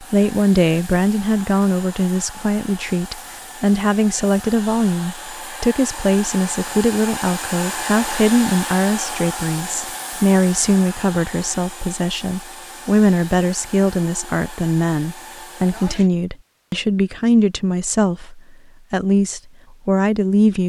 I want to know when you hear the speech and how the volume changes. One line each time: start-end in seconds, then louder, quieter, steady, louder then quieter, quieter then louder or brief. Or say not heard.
0.0-20.6 steady.